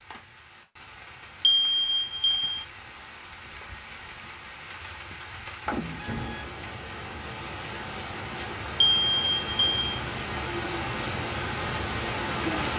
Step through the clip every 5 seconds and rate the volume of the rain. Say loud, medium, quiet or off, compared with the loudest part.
quiet, medium, loud.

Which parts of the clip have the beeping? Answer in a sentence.
The beeping can be heard from 1.4 to 2.6 s, from 5.7 to 6.5 s and from 8.8 to 9.8 s.